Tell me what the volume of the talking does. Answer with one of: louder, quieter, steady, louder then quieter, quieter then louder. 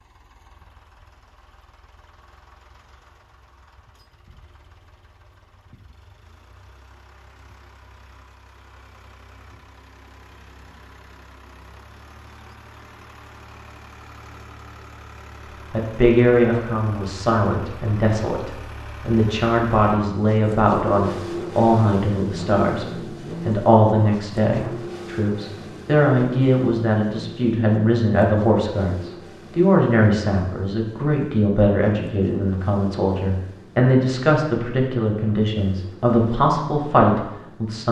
steady.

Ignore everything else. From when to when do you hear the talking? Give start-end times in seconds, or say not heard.
15.7-37.8.